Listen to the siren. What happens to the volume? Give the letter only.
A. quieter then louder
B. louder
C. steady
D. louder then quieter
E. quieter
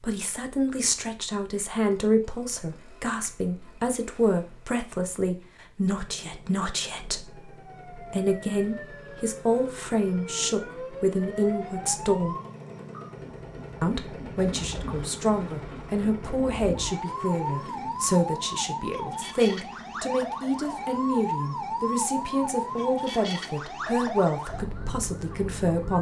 B.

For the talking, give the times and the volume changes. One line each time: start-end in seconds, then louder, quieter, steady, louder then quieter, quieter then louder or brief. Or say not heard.
0.0-12.3 steady
13.8-25.9 steady.